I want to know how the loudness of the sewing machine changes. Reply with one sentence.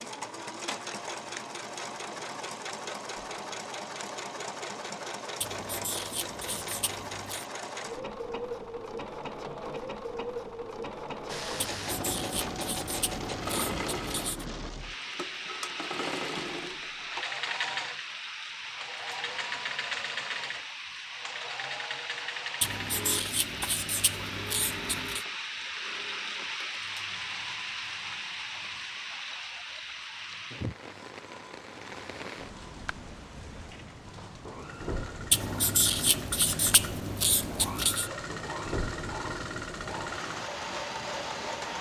The volume of the sewing machine goes down, then up.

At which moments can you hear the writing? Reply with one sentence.
The writing can be heard from 5.4 to 7.5 s, from 11.6 to 14.4 s, from 22.6 to 25.2 s and from 35.3 to 38.1 s.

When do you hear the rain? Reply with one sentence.
You can hear the rain from 11.2 to 41.7 s.